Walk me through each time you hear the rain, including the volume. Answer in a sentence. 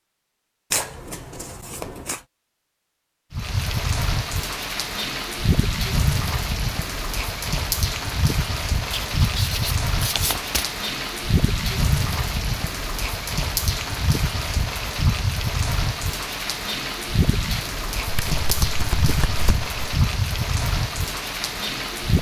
You can hear the rain from 3.3 to 22.1 s, at a steady volume.